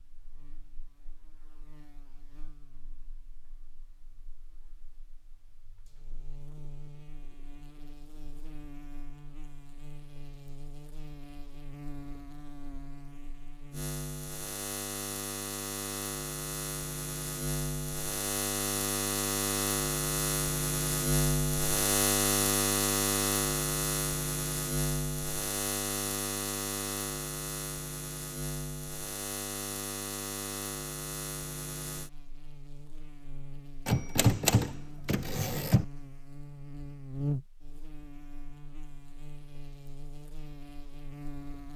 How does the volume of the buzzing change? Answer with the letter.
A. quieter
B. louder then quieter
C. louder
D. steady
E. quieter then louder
B.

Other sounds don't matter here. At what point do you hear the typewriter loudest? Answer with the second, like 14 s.
34 s.